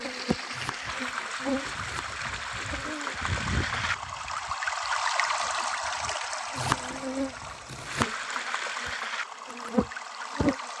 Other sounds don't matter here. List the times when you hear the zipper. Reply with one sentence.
The zipper can't be heard in this clip.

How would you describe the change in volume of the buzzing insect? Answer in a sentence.
The loudness of the buzzing insect goes down, then up.